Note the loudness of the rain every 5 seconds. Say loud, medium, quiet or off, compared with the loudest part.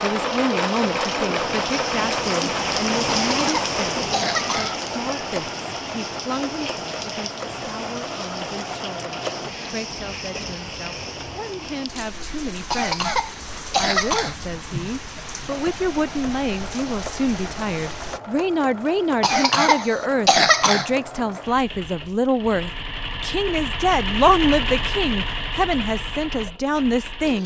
loud, medium, medium, medium, off, off.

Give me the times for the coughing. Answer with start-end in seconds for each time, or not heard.
3.3-4.8, 12.7-14.3, 19.2-20.9.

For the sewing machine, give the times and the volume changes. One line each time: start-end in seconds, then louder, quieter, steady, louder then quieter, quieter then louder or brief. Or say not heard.
0.0-9.5 quieter
15.4-27.4 louder.